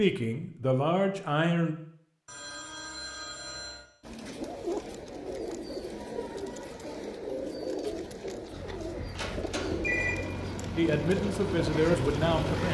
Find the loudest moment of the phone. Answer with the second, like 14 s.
10 s.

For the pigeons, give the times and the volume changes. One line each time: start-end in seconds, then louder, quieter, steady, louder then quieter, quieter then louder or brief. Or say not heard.
4.0-12.6 steady.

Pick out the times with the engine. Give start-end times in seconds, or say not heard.
8.4-12.6.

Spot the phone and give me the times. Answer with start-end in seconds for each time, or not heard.
2.2-3.9, 9.2-10.2.